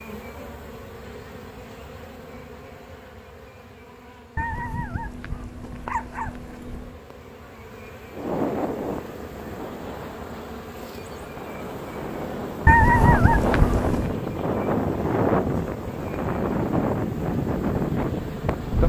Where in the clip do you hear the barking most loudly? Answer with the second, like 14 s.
13 s.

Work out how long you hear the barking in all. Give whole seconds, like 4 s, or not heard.
4 s.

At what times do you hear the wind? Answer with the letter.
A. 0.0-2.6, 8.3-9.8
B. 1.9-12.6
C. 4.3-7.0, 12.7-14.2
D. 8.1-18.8
D.